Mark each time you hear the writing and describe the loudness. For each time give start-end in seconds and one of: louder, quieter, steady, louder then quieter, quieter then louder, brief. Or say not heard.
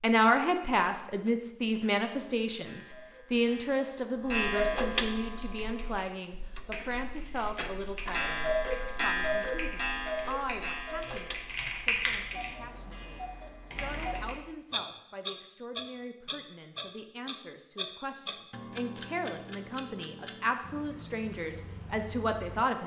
not heard.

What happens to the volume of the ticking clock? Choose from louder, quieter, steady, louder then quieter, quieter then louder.
quieter.